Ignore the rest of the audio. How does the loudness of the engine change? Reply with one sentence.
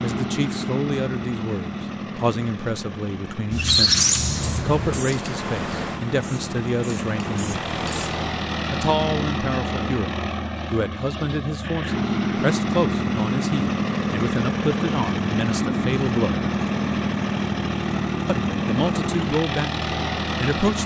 The volume of the engine goes up.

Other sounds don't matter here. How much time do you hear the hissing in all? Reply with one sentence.
The hissing can be heard for 4 seconds in total.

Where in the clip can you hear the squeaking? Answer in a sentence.
You can hear the squeaking from 3.5 to 4.8 s.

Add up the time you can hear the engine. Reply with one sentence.
The engine can be heard for 21 seconds in total.